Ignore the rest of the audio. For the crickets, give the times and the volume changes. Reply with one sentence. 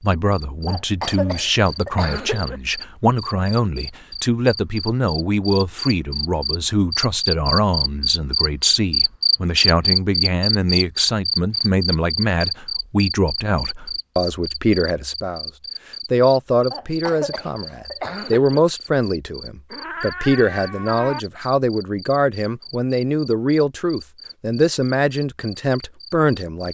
The crickets can be heard from 0.1 to 26.6 s, getting louder then quieter.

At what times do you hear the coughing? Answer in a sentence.
The coughing can be heard from 0.7 to 2.6 s and from 16.7 to 18.6 s.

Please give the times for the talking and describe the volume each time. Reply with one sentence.
You can hear the talking from 0.0 to 15.5 s, at a steady volume; and from 16.1 to 26.6 s, at a steady volume.